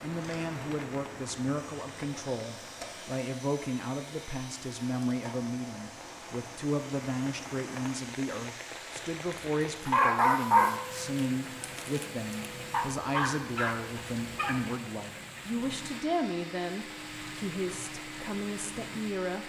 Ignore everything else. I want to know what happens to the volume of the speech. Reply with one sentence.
The loudness of the speech stays about the same.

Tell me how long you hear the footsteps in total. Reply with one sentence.
The footsteps can't be heard in this clip.